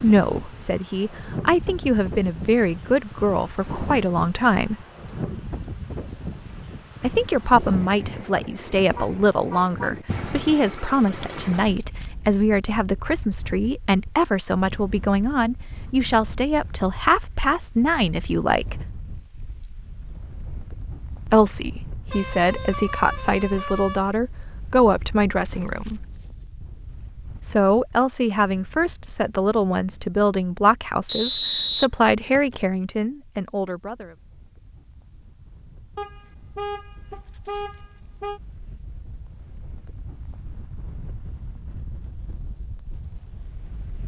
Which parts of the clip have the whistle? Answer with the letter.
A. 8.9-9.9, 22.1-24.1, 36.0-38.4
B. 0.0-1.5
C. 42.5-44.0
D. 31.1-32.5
D.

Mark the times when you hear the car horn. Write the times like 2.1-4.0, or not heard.
8.9-9.9, 22.1-24.1, 36.0-38.4.